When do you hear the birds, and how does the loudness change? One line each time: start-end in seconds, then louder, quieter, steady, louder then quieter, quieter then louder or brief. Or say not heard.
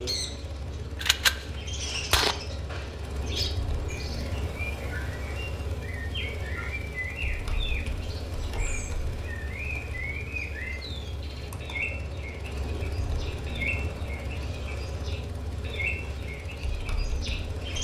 0.0-17.7 steady.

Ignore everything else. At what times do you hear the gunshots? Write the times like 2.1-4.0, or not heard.
0.9-2.4.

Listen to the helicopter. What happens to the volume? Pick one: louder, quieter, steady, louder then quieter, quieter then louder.
steady.